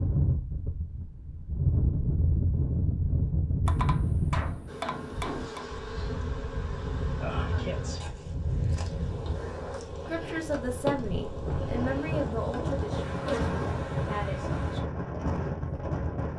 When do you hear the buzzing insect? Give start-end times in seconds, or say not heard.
4.7-14.8.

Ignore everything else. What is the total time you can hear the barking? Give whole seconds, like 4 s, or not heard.
not heard.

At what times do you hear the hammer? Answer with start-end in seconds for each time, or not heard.
3.6-5.7.